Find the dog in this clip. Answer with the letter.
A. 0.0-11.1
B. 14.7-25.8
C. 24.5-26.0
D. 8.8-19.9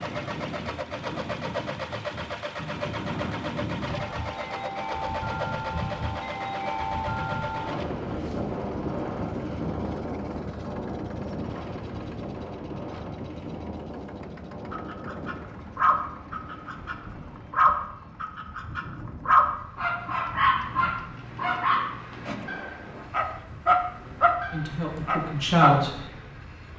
B.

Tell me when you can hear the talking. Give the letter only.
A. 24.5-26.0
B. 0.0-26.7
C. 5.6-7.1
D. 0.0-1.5
A.